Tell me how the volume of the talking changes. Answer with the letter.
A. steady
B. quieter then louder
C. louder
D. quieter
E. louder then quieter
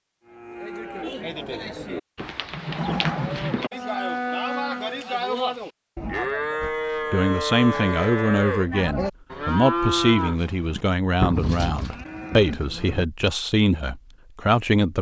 A.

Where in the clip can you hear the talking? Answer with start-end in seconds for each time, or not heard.
6.6-14.9.